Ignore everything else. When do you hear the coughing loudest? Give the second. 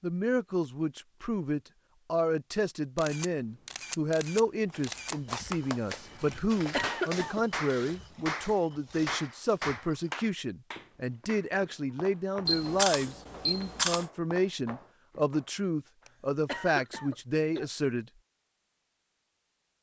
7 s.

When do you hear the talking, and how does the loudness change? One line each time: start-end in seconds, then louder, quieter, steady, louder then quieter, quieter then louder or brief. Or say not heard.
0.0-18.1 steady.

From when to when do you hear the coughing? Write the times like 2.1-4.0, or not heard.
6.3-7.4, 16.1-17.7.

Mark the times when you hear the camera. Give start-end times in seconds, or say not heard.
3.0-5.2, 12.4-14.1.